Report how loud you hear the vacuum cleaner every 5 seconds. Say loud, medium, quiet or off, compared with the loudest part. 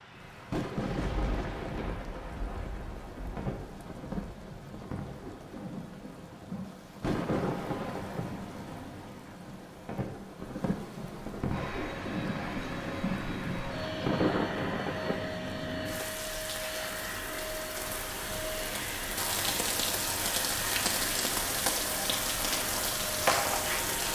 off, off, loud, loud, loud.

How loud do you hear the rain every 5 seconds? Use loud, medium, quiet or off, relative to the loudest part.
medium, medium, loud, medium, loud.